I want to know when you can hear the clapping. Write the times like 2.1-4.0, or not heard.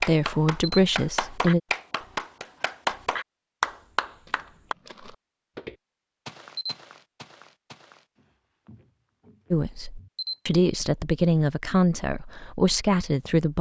0.0-4.8.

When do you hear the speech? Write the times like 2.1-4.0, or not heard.
0.0-1.6, 9.5-13.5.